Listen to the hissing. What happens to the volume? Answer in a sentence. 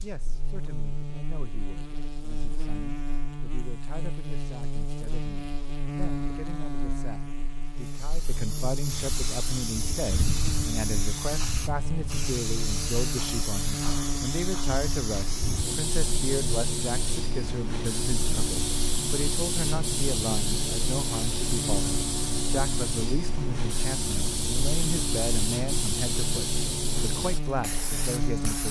The loudness of the hissing stays about the same.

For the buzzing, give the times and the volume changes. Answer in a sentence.
The buzzing can be heard from 0.0 to 28.6 s, at a steady volume.